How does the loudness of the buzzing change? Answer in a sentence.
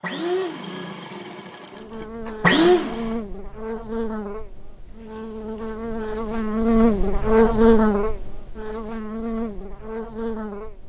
The loudness of the buzzing goes up, then down.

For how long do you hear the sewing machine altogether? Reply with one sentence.
You can hear the sewing machine for 3 seconds altogether.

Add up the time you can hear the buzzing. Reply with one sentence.
You can hear the buzzing for 9 seconds altogether.